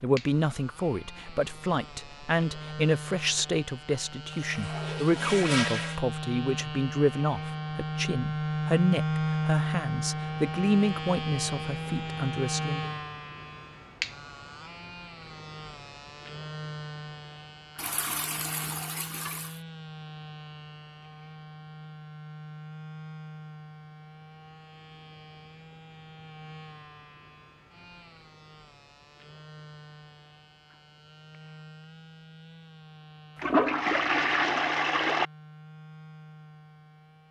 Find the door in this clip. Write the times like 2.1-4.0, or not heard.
not heard.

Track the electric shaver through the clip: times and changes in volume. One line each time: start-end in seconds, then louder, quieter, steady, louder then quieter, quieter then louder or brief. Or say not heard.
0.0-37.2 louder then quieter.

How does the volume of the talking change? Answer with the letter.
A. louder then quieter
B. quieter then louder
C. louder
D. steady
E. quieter
D.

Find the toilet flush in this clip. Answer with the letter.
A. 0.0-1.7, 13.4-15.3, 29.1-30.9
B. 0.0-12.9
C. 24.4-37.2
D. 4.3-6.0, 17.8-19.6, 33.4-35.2
D.